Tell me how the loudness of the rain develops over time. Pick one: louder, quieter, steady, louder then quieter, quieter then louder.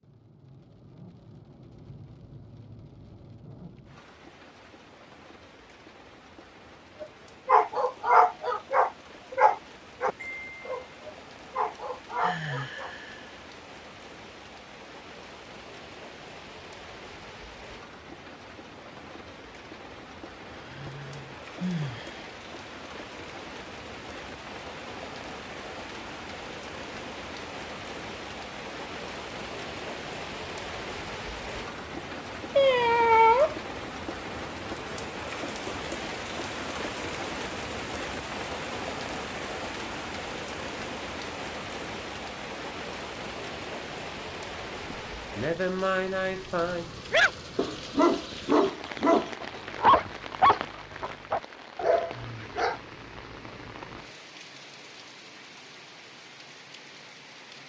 louder then quieter.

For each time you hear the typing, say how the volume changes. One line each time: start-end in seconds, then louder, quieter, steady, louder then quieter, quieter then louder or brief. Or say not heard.
not heard.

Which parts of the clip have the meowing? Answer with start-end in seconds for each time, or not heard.
32.5-33.5.